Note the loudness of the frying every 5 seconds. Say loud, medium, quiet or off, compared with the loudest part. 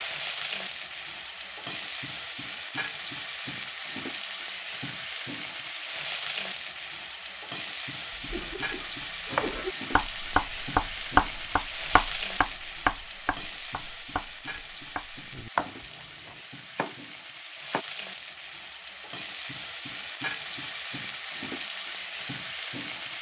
loud, loud, loud, medium, loud.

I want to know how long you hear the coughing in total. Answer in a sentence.
The coughing can be heard for 2 seconds in total.